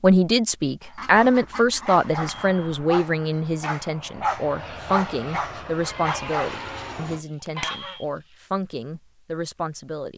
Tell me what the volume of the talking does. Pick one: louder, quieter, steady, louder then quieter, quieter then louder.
quieter.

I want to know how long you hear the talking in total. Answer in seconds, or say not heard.
10 s.